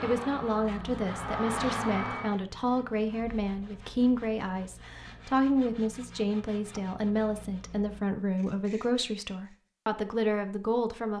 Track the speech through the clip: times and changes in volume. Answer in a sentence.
The speech can be heard from 0.0 to 11.1 s, at a steady volume.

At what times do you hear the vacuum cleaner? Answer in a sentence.
You can hear the vacuum cleaner from 0.0 to 2.4 s.